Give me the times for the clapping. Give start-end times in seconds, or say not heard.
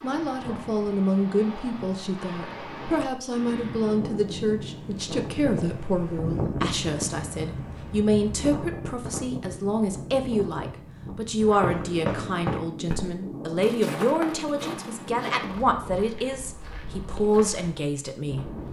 not heard.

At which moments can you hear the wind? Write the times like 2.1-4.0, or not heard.
0.0-18.6.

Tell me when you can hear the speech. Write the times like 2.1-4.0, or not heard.
0.0-18.4.